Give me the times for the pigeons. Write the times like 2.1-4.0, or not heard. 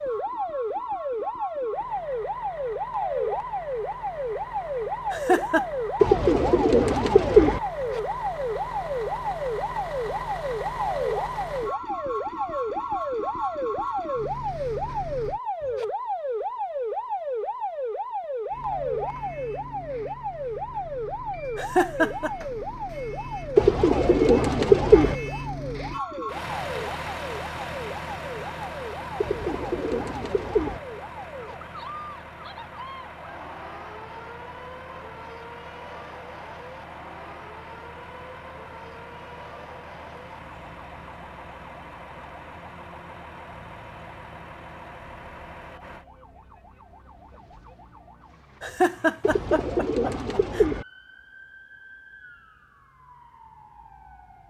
6.0-7.6, 23.6-25.1, 29.2-30.8, 49.2-50.9.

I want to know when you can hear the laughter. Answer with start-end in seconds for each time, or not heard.
5.1-5.7, 21.6-22.3, 48.6-50.6.